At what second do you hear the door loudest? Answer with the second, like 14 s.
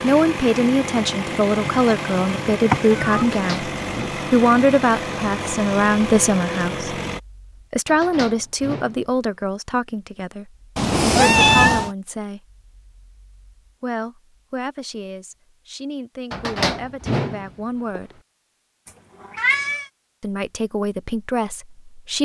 17 s.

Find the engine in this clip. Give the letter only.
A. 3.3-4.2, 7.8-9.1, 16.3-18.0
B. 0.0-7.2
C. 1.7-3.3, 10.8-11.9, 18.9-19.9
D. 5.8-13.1
B.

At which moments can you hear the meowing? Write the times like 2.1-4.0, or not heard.
1.7-3.3, 10.8-11.9, 18.9-19.9.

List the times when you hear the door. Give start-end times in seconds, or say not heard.
3.3-4.2, 7.8-9.1, 16.3-18.0.